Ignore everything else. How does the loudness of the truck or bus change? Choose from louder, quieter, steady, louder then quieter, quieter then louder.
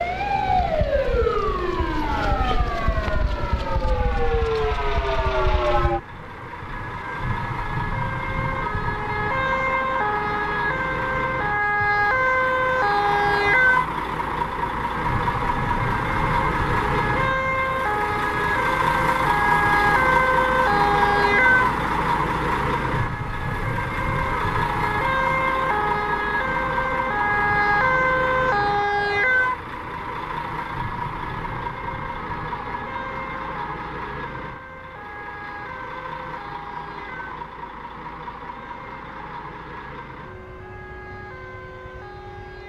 louder then quieter.